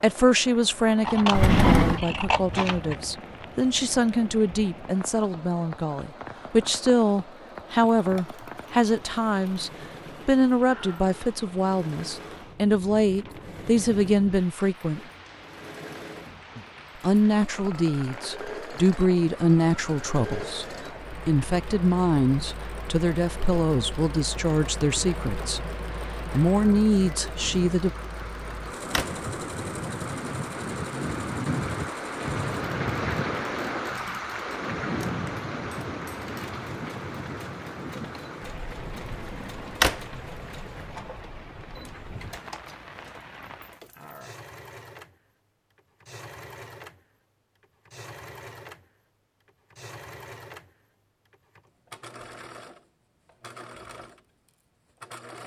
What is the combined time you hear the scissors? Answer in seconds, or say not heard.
2 s.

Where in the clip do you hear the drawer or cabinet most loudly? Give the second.
2 s.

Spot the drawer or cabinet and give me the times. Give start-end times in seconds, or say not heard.
1.3-2.0, 28.4-29.1, 39.1-40.0.